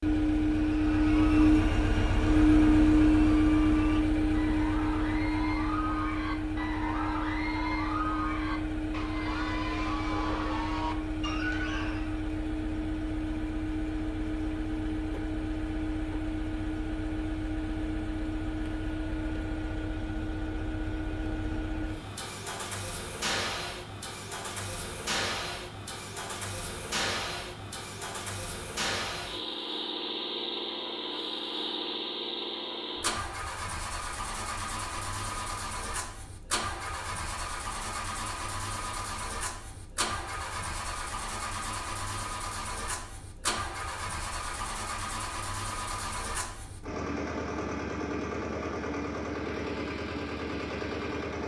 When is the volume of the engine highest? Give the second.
3 s.